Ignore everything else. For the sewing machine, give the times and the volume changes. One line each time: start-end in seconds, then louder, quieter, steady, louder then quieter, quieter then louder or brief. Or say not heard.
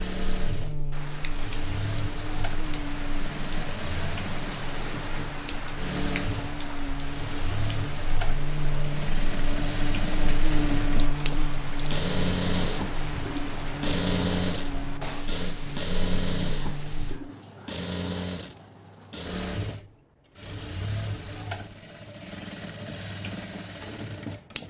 0.0-24.6 louder then quieter.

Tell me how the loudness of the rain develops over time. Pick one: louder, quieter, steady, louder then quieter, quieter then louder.
steady.